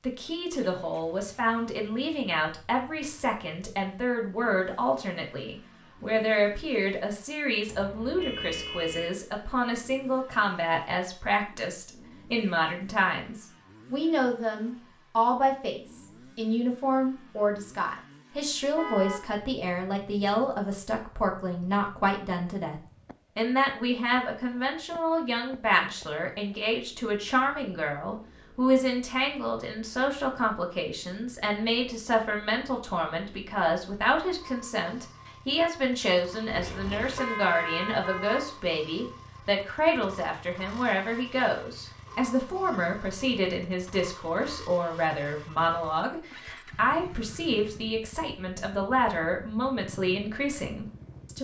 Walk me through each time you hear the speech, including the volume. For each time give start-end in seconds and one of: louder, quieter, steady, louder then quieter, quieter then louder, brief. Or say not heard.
0.0-51.3 steady.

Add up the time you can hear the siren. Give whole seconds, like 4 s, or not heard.
not heard.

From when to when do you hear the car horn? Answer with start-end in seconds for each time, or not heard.
7.7-9.2, 18.8-19.2, 36.5-38.5.